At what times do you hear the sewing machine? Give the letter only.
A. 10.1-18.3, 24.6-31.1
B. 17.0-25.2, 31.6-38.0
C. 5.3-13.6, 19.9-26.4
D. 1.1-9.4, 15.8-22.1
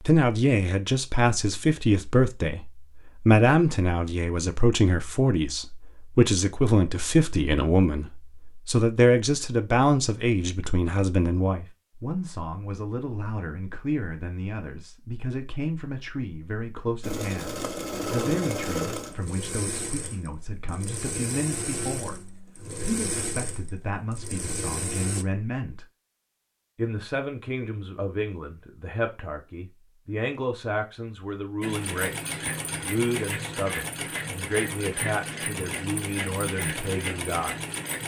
B.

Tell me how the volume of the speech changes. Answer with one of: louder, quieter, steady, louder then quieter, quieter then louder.
quieter.